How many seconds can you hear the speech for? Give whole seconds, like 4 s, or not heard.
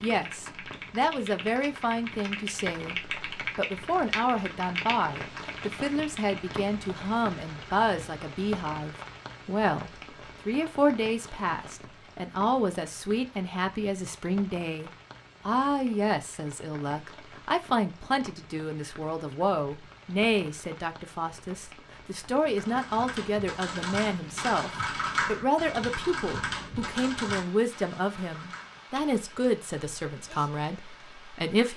32 s.